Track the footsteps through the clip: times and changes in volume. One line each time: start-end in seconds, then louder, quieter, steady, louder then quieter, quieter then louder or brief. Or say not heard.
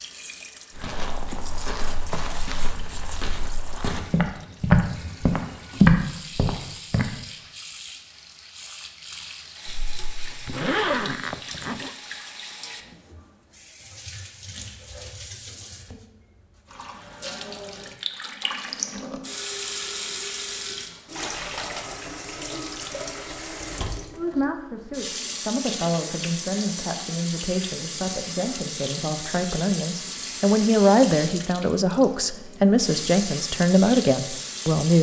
0.8-7.2 louder.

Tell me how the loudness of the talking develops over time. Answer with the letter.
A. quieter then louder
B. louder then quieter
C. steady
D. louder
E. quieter
D.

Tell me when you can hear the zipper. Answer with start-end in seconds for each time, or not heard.
9.7-11.9.